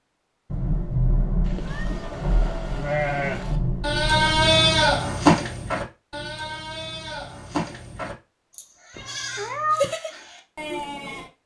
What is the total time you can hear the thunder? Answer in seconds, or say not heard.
4 s.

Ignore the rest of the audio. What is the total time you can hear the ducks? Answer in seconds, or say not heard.
not heard.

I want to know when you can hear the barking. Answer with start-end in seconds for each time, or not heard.
not heard.